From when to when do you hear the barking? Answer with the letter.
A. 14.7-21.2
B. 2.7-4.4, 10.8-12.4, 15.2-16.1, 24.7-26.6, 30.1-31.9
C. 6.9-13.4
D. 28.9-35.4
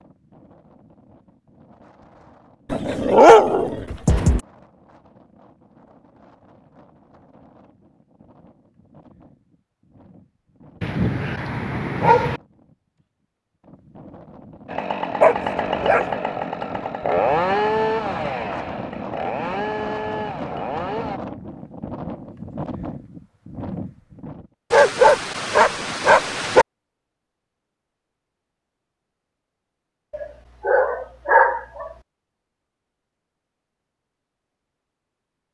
B.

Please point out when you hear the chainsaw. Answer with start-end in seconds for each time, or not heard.
14.7-21.2.